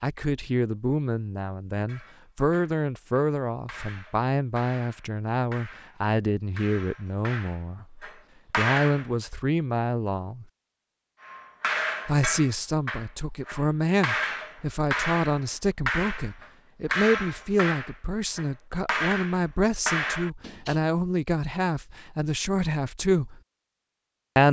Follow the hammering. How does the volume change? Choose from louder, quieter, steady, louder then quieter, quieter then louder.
louder.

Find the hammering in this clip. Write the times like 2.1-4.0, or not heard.
1.9-9.1, 11.2-20.8.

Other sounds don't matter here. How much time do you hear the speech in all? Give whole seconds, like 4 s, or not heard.
22 s.